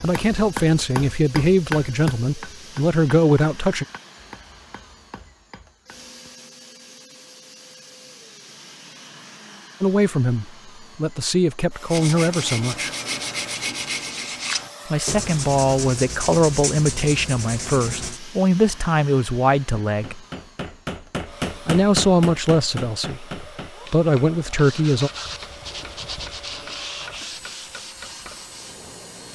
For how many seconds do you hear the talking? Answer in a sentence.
The talking can be heard for 16 seconds in total.